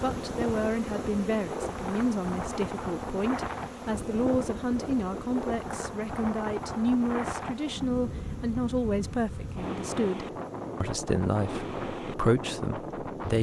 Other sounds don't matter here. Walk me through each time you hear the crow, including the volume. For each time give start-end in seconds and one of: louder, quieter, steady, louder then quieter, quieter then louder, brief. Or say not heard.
not heard.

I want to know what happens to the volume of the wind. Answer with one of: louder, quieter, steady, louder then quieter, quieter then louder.
steady.